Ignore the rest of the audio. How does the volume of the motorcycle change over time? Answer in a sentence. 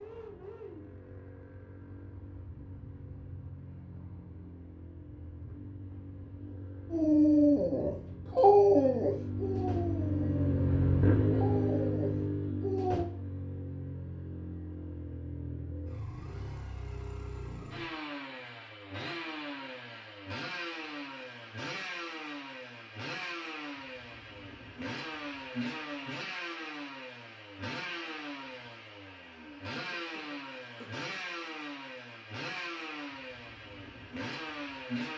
The loudness of the motorcycle goes up, then down.